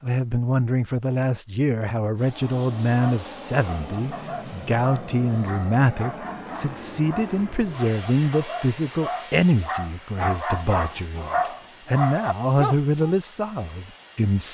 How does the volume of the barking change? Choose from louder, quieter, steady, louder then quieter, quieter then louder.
louder.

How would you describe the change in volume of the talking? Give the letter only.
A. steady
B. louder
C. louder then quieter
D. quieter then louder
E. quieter
A.